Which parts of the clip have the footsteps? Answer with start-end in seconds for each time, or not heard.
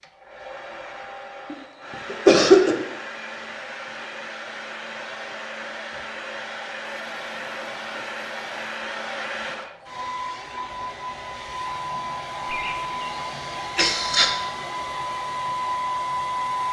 not heard.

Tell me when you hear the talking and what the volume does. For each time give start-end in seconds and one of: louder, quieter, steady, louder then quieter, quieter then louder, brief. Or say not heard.
not heard.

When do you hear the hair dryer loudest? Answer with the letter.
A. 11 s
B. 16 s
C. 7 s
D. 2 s
B.